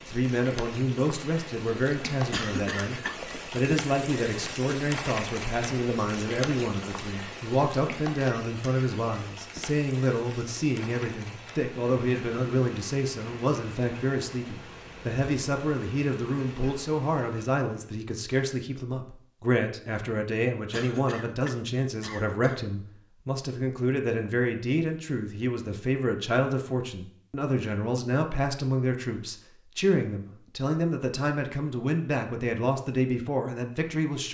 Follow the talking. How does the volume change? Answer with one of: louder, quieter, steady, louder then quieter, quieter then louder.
steady.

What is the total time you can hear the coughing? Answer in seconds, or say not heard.
3 s.